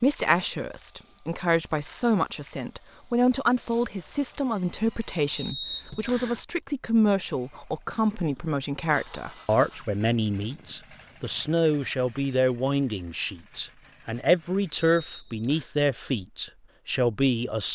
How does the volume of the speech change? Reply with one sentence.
The loudness of the speech stays about the same.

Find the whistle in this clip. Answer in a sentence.
The whistle can be heard from 5.2 to 6.4 s and from 14.7 to 15.8 s.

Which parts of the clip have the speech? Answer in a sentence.
You can hear the speech from 0.0 to 17.6 s.